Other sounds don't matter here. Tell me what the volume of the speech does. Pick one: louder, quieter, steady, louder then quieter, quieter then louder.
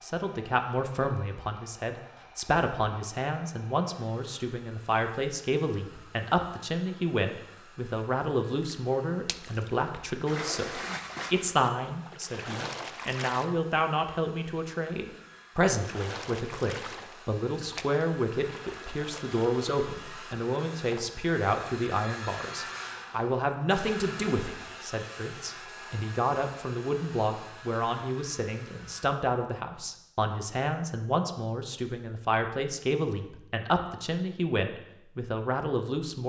steady.